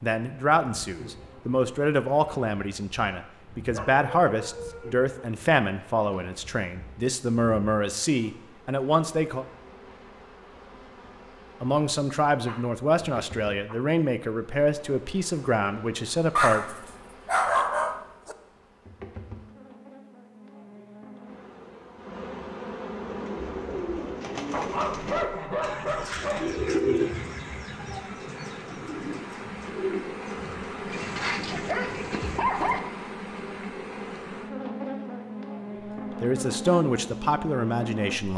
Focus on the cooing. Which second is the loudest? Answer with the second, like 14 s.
27 s.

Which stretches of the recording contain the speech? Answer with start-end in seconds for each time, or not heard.
0.0-9.4, 11.6-16.8, 36.2-38.3.